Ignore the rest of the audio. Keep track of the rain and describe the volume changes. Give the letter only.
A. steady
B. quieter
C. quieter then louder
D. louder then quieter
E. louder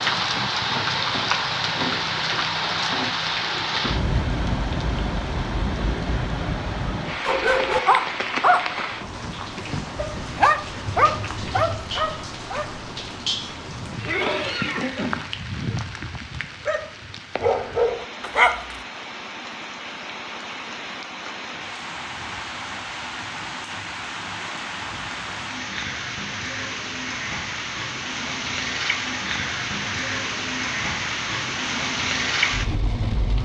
C.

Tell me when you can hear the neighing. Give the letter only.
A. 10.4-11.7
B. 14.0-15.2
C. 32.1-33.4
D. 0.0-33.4
B.